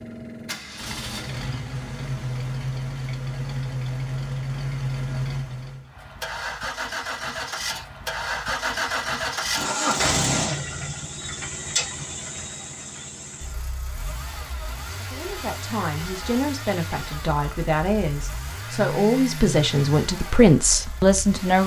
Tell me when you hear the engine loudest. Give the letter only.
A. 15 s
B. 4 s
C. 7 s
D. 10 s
D.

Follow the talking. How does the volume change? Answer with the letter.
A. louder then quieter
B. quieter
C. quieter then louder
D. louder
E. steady
D.